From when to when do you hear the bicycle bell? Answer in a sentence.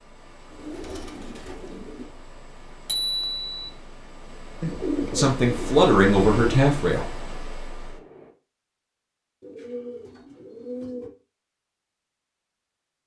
You can hear the bicycle bell from 2.9 to 3.7 s.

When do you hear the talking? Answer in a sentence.
The talking can be heard from 5.2 to 7.0 s.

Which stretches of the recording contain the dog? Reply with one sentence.
You can't hear the dog here.